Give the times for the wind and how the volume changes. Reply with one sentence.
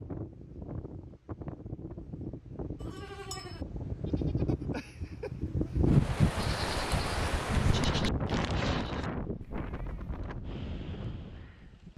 You can hear the wind from 0.0 to 11.9 s, getting louder then quieter.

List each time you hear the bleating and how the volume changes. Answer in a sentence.
You can hear the bleating from 2.8 to 10.2 s, getting louder.